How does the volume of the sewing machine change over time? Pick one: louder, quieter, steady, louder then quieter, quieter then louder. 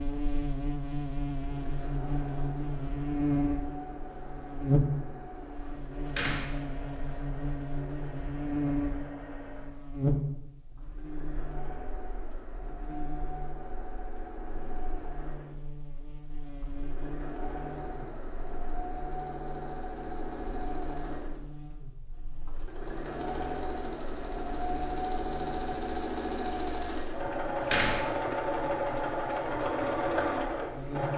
louder.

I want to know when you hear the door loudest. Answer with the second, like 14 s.
28 s.